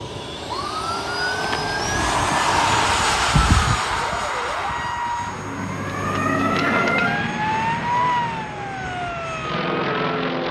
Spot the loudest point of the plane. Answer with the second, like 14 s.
3 s.